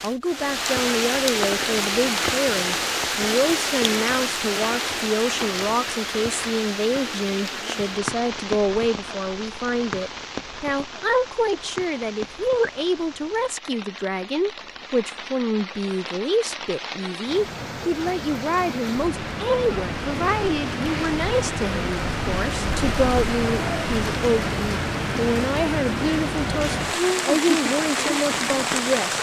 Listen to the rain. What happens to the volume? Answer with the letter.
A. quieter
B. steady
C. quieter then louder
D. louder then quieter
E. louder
C.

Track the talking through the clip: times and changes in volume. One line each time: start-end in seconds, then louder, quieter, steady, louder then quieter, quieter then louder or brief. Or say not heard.
0.0-29.1 steady.